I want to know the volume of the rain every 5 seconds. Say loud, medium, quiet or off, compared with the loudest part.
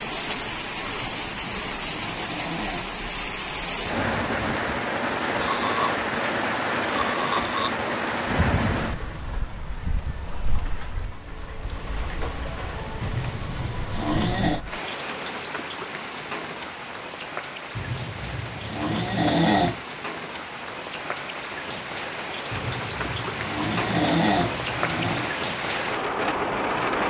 loud, loud, medium, medium, medium, loud.